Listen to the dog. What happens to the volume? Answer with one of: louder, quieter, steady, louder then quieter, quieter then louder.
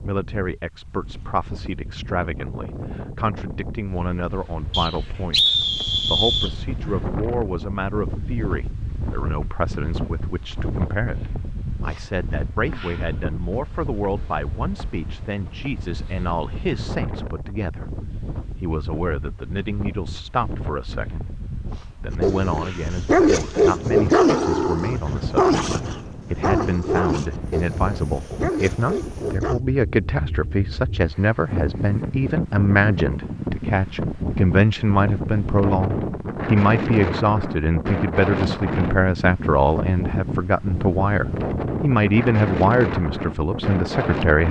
quieter.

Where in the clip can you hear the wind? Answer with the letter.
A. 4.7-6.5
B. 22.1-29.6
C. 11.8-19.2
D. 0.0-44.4
D.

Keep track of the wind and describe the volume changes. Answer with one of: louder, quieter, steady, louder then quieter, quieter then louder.
louder.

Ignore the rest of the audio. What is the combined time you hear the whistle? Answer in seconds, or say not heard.
2 s.